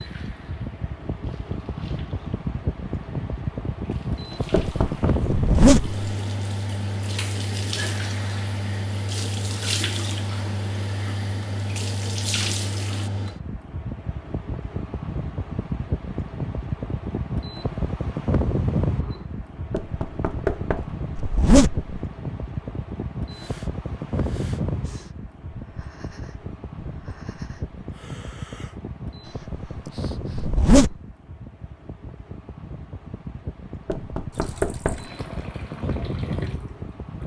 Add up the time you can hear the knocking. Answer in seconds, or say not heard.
3 s.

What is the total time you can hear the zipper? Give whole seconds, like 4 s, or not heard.
2 s.